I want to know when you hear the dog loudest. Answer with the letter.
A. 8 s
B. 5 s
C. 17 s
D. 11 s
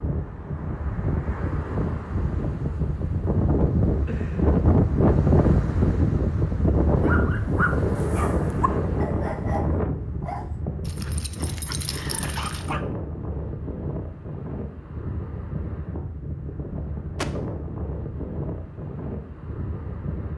A.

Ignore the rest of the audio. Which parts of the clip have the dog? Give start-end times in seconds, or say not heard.
7.0-12.8.